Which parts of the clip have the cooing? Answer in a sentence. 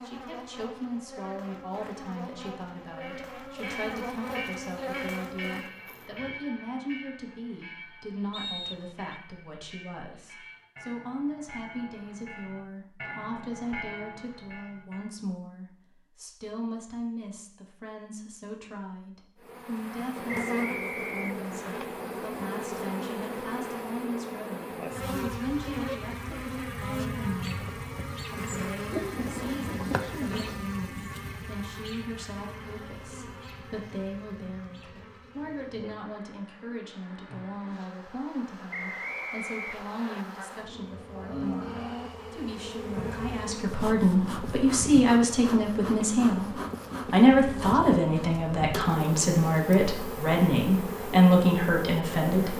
The cooing can be heard from 28.9 to 30.6 s.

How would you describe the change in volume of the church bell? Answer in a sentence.
The loudness of the church bell goes down, then up.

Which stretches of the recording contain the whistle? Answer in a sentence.
You can hear the whistle from 8.3 to 9.1 s, from 20.2 to 21.8 s and from 38.7 to 40.2 s.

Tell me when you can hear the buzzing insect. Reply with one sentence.
The buzzing insect can be heard from 0.0 to 6.3 s and from 19.4 to 52.5 s.